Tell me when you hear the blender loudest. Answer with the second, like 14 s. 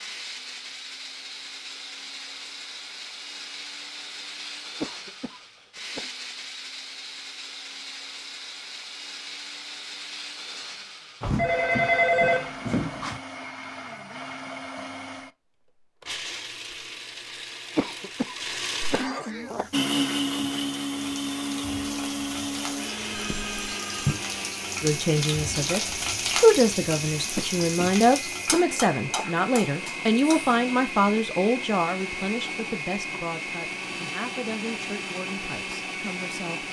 20 s.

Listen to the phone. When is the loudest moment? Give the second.
12 s.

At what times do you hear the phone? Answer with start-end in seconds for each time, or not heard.
11.2-13.2, 23.1-24.1.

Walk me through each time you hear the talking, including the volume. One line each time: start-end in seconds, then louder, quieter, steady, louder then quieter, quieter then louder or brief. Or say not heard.
24.8-36.6 quieter.